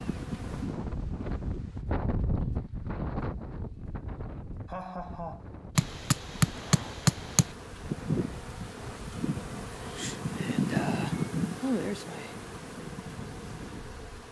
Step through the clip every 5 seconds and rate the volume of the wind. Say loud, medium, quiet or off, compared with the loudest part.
loud, medium, medium.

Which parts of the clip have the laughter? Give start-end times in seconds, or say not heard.
4.7-5.5.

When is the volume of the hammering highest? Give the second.
7 s.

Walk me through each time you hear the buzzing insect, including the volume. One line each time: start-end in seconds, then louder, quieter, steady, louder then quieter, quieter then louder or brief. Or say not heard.
0.0-1.9 brief
5.8-14.2 louder then quieter.